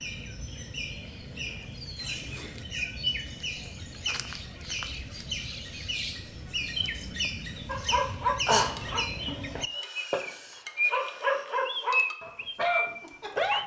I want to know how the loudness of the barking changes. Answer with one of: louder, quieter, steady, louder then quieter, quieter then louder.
quieter then louder.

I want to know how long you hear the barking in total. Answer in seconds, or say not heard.
6 s.